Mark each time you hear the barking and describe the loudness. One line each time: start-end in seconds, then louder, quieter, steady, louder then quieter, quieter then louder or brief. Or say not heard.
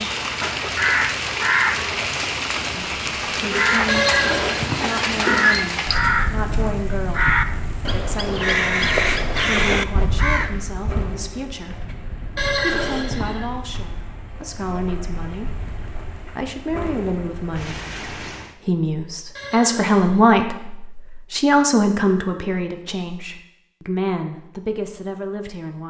not heard.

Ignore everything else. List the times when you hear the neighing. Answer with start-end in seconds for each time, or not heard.
3.9-5.7, 12.3-13.5, 19.4-20.4.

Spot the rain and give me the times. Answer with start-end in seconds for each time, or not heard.
0.0-18.6.